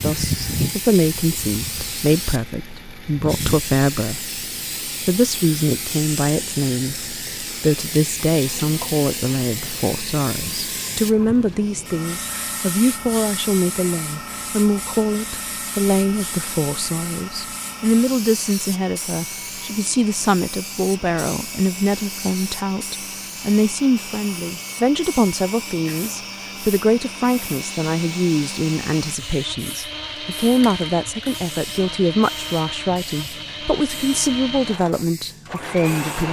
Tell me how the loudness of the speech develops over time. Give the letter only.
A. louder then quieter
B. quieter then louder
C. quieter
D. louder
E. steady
E.